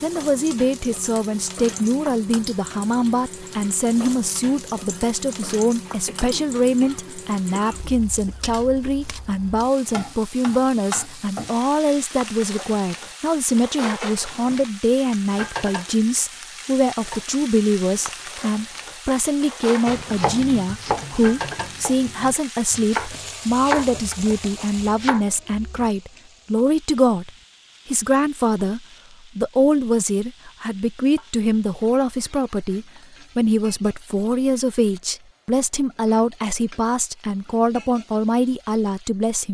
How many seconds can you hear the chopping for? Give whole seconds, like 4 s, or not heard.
6 s.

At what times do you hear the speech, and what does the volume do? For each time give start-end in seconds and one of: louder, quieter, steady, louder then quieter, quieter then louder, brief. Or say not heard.
0.0-39.4 steady.